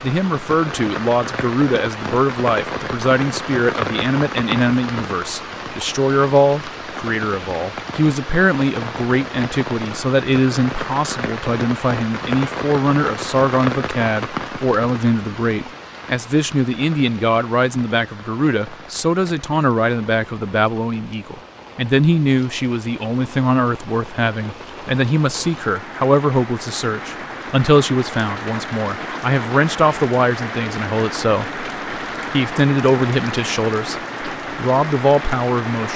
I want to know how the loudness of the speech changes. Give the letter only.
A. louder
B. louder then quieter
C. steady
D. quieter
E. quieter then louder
C.